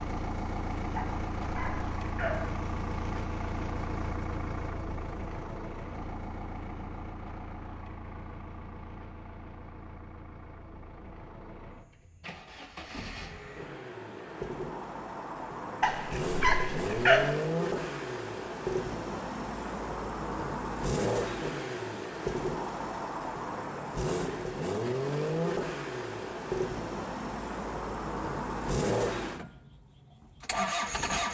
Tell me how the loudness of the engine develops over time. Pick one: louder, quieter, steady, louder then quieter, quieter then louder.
quieter then louder.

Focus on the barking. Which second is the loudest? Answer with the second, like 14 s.
17 s.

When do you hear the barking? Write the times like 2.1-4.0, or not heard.
0.9-2.5, 15.8-17.3.